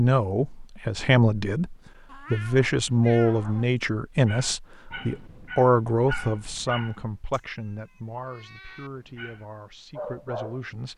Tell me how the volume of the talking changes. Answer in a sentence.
The loudness of the talking goes down.